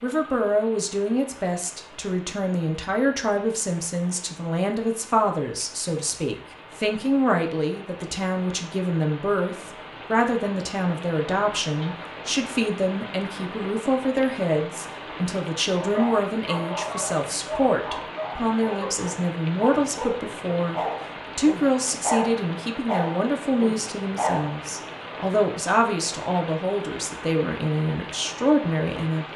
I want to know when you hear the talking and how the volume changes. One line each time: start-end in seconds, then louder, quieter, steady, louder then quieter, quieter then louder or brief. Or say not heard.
0.0-29.3 steady.